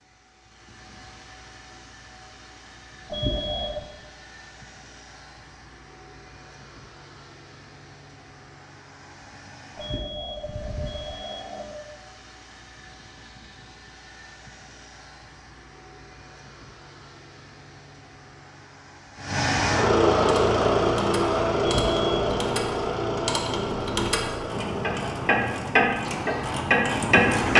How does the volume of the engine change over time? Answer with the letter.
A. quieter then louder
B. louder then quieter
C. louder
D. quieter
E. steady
C.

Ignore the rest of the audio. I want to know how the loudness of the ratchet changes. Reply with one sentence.
The volume of the ratchet goes up.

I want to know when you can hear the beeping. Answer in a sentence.
You can hear the beeping from 3.1 to 3.9 s, from 9.8 to 11.8 s and from 21.6 to 22.1 s.